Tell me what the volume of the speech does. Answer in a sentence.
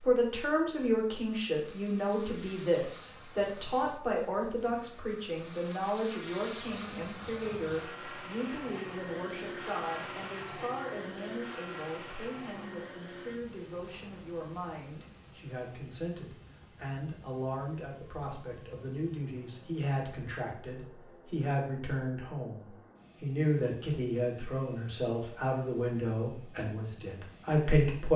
The loudness of the speech goes down, then up.